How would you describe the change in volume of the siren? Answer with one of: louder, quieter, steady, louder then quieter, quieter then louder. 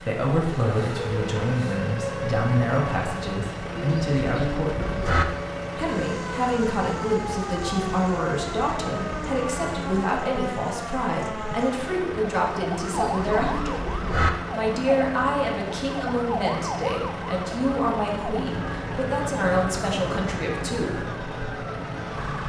steady.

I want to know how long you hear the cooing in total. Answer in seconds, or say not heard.
3 s.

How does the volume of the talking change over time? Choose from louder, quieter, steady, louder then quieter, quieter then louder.
steady.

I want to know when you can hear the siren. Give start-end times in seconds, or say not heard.
0.0-22.4.